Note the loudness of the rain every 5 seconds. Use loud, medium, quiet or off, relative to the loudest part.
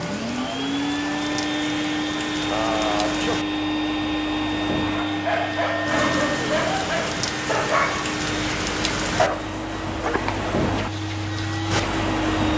medium, loud, loud.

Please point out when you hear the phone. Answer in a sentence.
The phone can't be heard in this clip.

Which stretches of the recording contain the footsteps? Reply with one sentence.
The footsteps can't be heard in this clip.